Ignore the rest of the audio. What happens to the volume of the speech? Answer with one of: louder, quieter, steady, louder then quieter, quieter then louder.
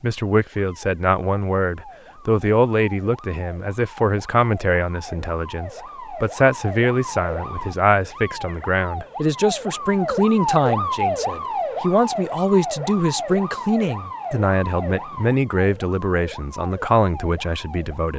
steady.